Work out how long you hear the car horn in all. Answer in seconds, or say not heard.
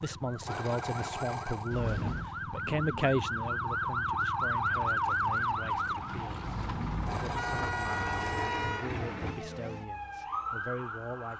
3 s.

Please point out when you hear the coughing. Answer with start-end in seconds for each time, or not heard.
not heard.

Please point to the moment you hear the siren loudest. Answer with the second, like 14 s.
5 s.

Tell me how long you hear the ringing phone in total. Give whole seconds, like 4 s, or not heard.
3 s.